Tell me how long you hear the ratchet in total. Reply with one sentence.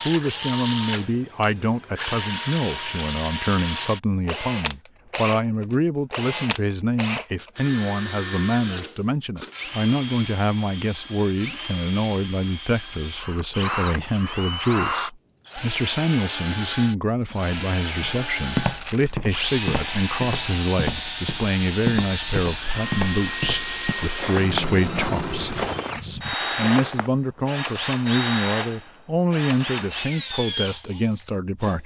You can't hear the ratchet here.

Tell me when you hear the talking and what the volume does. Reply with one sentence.
The talking can be heard from 0.1 to 31.8 s, at a steady volume.